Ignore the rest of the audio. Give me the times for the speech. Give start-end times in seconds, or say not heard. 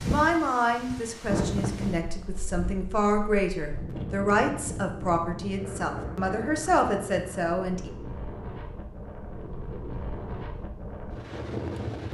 0.1-7.9.